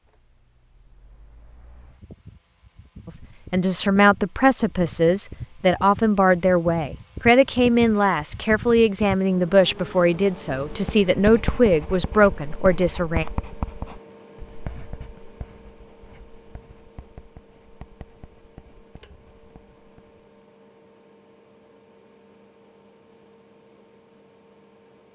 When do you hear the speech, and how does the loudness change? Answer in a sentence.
The speech can be heard from 3.0 to 13.2 s, at a steady volume.